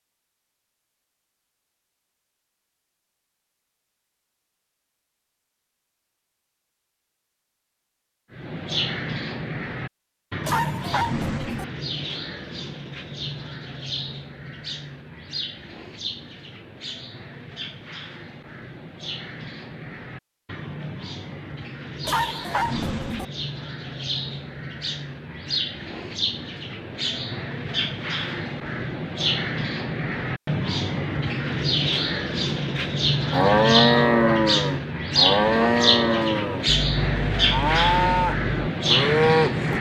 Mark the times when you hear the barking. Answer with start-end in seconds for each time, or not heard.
10.4-11.7, 22.1-23.2.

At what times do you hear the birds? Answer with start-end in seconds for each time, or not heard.
8.3-39.7.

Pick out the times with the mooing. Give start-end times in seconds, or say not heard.
33.3-39.7.